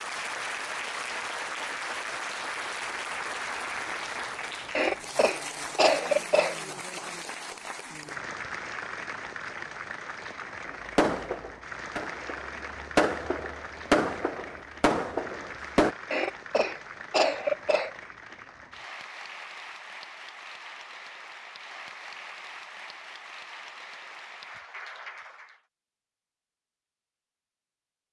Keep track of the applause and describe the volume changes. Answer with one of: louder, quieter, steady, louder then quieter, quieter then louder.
quieter.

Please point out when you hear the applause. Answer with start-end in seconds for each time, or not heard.
0.0-25.6.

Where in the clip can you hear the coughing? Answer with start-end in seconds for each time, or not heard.
4.8-6.5, 16.1-17.9.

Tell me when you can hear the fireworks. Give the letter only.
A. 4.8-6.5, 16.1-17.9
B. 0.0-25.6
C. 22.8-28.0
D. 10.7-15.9
D.